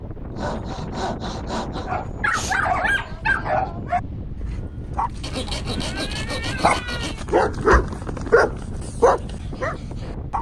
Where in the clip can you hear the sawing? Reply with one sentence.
You can hear the sawing from 0.3 to 3.1 s and from 5.2 to 7.2 s.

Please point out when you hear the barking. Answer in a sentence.
The barking can be heard from 1.9 to 10.3 s.